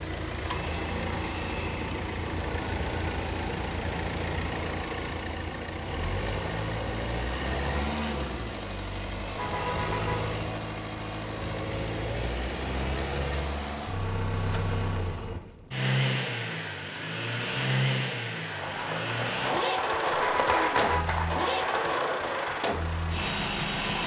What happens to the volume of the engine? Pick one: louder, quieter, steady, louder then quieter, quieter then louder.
steady.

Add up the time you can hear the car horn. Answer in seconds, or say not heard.
2 s.